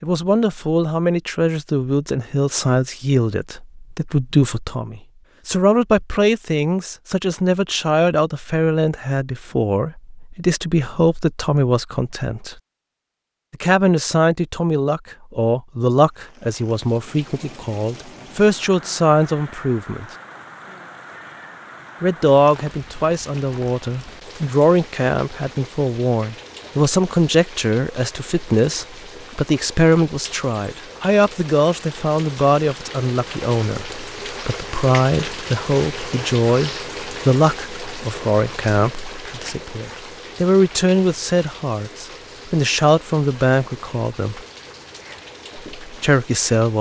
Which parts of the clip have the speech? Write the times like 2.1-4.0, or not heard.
0.0-12.6, 13.5-20.1, 22.0-44.4, 45.8-46.7.